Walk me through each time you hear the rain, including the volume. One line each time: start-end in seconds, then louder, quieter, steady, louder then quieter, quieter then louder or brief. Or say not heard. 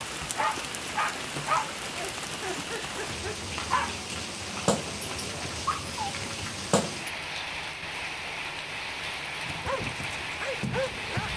0.0-11.3 steady.